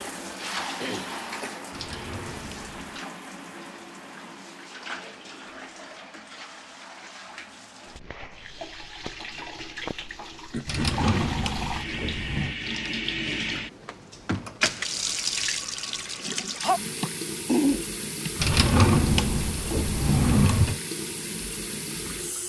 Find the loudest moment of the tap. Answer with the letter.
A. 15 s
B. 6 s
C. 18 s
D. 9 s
A.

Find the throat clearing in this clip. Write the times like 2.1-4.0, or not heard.
0.8-1.6, 10.5-11.1, 17.0-18.3.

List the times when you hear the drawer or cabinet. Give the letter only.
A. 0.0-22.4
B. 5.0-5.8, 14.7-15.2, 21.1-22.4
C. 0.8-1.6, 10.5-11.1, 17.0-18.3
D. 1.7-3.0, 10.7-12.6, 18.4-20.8
D.